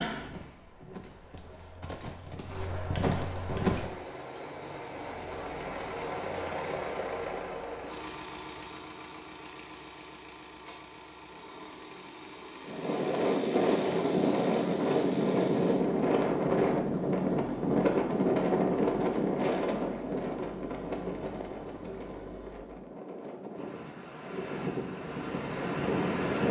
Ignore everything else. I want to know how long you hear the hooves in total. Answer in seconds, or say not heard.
4 s.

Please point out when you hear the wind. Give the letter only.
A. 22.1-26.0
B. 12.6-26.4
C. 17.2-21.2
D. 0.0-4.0
B.